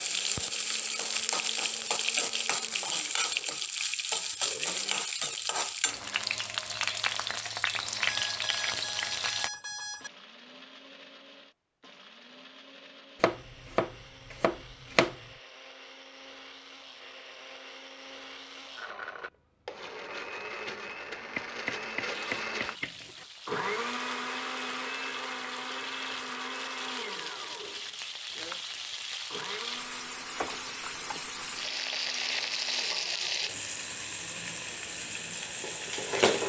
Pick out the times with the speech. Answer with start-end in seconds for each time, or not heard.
not heard.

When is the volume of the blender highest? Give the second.
24 s.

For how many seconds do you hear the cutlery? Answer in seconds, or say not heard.
not heard.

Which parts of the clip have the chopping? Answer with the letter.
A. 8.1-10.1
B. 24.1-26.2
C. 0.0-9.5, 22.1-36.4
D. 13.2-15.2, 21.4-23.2
D.